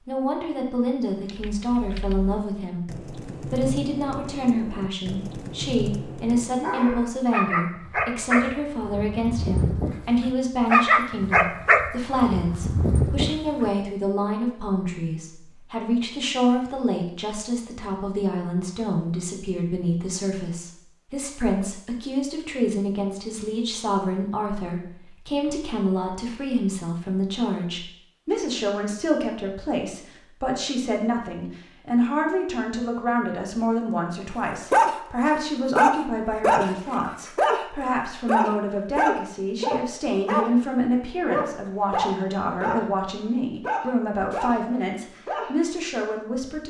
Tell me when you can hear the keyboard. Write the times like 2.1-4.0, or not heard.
1.2-6.7.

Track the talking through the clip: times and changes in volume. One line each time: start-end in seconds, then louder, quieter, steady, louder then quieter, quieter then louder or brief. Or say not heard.
0.1-46.6 steady.